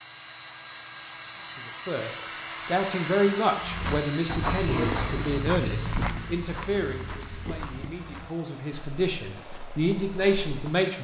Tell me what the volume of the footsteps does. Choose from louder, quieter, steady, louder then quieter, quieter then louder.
quieter.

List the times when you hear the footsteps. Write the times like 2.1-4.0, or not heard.
3.6-10.8.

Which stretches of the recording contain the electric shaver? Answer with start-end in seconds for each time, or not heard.
not heard.